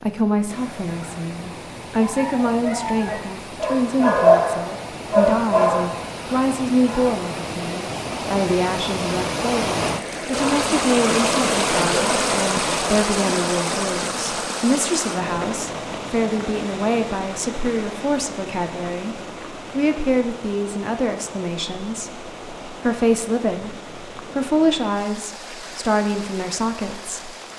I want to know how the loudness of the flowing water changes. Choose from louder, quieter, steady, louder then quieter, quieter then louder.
louder then quieter.